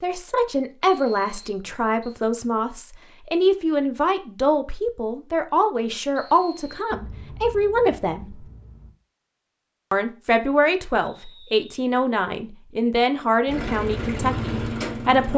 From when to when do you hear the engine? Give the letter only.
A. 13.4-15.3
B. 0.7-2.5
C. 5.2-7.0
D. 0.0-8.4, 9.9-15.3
A.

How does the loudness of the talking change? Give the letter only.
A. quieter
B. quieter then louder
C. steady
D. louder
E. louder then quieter
C.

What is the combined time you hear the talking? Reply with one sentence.
The talking can be heard for 14 seconds in total.